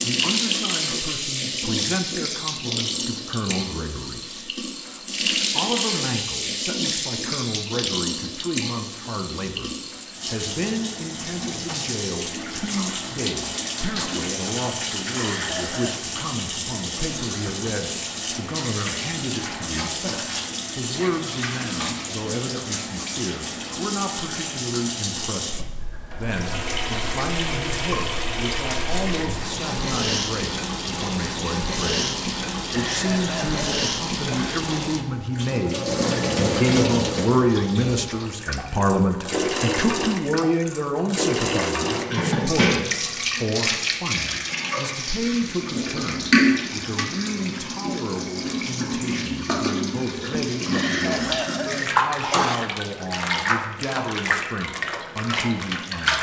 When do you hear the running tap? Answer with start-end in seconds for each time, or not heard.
0.0-56.1.